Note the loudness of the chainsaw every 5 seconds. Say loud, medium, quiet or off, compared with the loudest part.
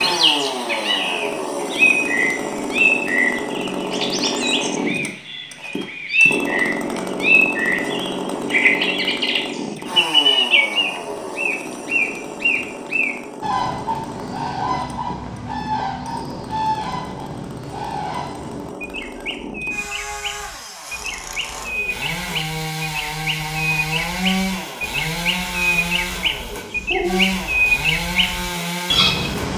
loud, loud, medium, medium, loud, loud.